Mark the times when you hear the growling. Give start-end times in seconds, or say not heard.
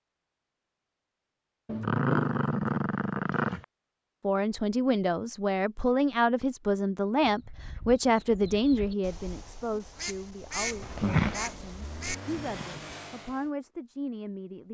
1.6-3.6, 10.8-11.6.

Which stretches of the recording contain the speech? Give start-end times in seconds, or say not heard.
4.2-14.6.